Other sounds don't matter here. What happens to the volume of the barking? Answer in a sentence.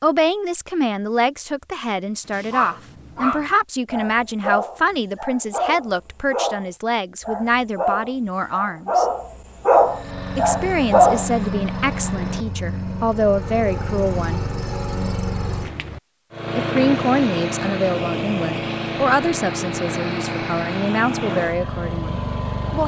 The volume of the barking goes up.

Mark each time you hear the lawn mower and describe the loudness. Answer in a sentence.
You can hear the lawn mower from 9.7 to 22.8 s, at a steady volume.